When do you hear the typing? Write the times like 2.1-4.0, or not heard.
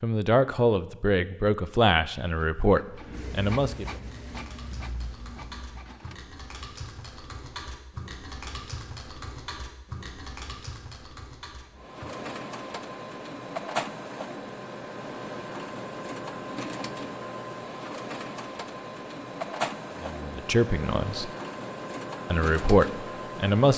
4.0-12.2.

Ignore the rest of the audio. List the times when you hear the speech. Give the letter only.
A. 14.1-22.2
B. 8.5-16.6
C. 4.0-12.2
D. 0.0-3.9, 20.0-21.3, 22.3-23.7
D.